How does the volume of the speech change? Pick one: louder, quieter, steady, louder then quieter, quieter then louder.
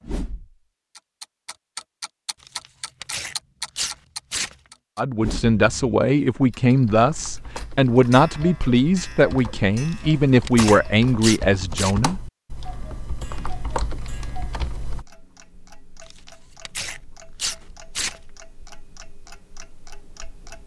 steady.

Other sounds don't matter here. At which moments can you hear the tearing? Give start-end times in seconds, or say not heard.
2.4-4.5, 9.8-11.9, 16.1-18.2.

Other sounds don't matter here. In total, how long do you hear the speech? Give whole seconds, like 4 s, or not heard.
7 s.